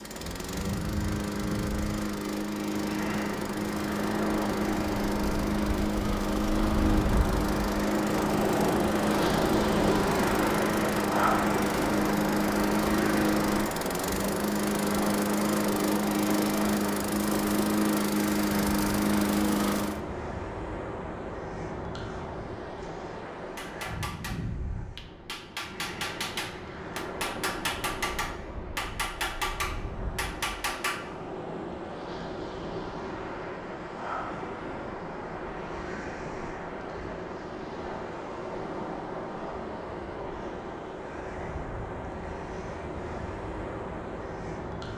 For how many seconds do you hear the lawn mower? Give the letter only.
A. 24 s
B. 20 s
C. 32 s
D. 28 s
B.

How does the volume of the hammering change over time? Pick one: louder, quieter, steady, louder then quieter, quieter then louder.
louder.